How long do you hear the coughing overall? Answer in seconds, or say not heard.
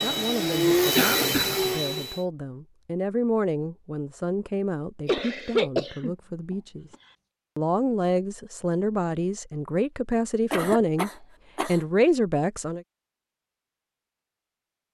4 s.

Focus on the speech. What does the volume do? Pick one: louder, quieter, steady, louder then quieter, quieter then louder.
louder.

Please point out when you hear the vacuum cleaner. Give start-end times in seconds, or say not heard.
0.0-2.2.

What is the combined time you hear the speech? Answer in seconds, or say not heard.
12 s.